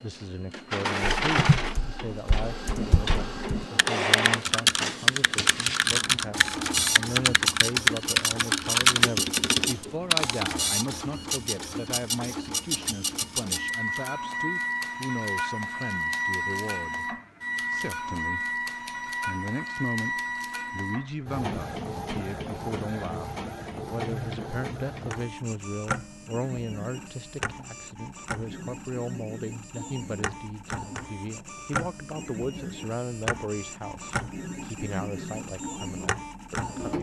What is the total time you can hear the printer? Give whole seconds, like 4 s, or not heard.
37 s.